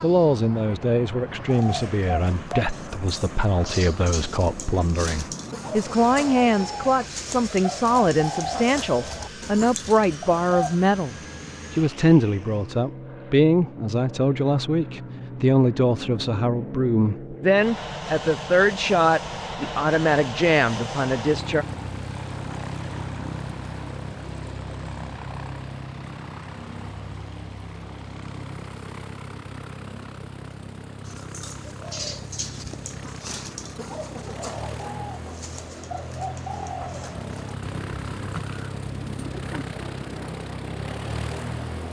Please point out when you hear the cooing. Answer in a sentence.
You can hear the cooing from 1.4 to 10.8 s and from 31.1 to 40.4 s.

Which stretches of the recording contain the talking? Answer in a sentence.
You can hear the talking from 0.0 to 21.6 s.